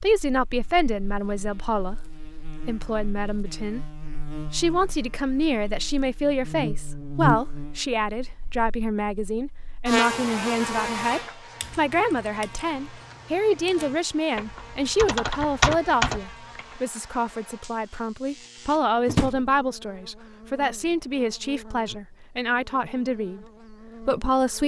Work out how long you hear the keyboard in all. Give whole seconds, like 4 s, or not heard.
5 s.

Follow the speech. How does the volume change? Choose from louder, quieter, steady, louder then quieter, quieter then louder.
steady.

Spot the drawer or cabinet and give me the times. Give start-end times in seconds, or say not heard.
19.1-19.6.